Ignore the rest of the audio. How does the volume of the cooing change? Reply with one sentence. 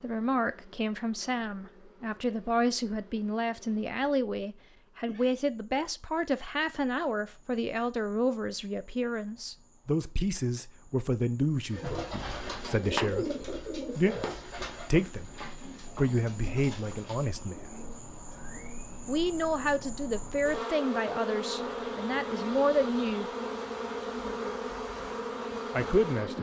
The loudness of the cooing goes down.